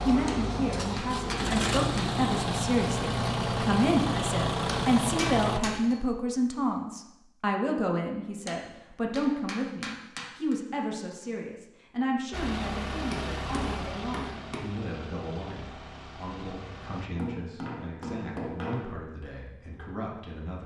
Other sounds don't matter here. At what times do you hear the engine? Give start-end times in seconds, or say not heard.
0.0-5.6, 12.3-17.1.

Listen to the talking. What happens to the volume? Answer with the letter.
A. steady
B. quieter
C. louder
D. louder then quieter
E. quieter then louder
B.